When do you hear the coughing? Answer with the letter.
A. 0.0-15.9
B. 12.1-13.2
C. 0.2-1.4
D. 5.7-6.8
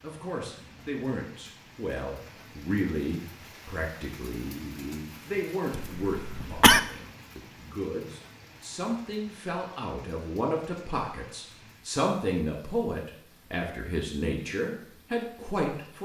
D.